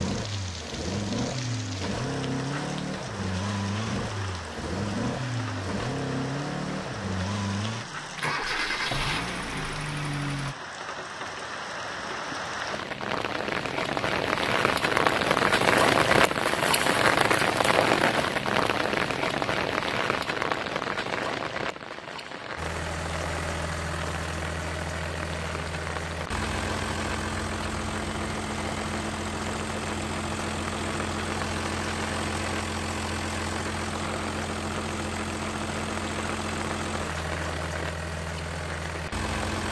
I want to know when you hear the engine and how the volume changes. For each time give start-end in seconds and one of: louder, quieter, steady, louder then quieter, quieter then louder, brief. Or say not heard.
0.0-10.6 steady
22.6-39.6 steady.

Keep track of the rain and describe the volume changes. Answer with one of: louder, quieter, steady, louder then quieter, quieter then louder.
louder then quieter.